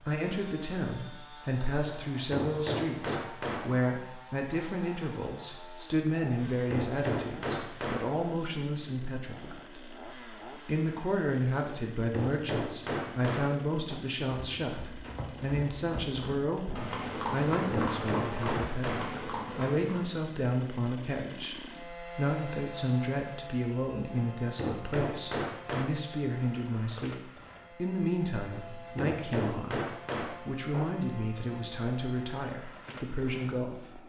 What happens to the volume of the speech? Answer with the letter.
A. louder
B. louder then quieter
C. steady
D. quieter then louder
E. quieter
C.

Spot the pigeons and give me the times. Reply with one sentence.
You can't hear the pigeons here.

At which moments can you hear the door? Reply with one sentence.
You can't hear the door here.